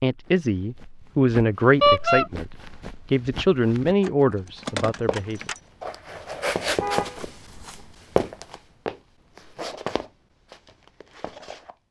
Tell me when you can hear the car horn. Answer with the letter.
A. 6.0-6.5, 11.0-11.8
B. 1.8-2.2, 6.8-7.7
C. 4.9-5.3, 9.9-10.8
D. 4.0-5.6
B.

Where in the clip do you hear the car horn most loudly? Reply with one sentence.
The loudest moment of the car horn is at 2 seconds.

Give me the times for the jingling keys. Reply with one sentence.
You can hear the jingling keys from 4.0 to 5.6 s.